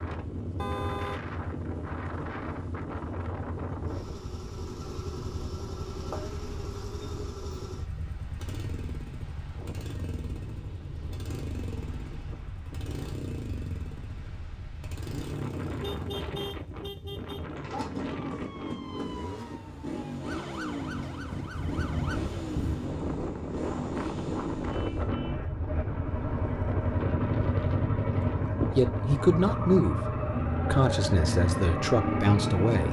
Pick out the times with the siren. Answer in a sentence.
You can hear the siren from 18.3 to 22.2 s.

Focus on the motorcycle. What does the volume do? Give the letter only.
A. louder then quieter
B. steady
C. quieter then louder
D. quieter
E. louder
E.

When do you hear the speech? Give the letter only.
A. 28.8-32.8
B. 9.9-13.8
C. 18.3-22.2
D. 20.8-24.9
A.